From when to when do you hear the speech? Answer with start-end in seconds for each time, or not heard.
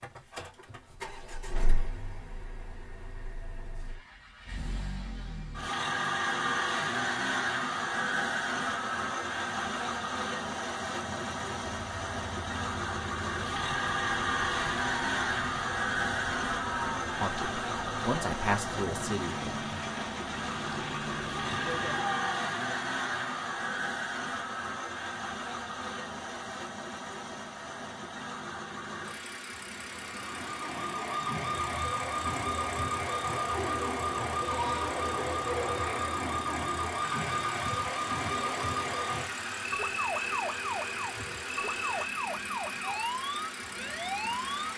17.2-19.9.